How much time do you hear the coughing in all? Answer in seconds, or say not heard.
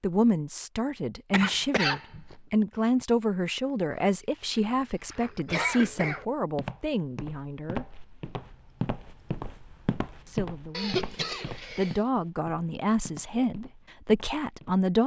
3 s.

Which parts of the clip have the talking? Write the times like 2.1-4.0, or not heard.
0.0-8.0, 10.2-15.0.